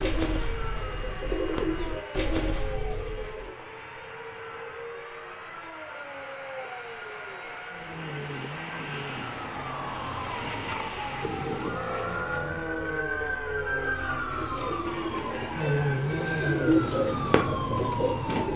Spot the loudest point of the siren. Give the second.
16 s.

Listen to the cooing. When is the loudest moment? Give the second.
17 s.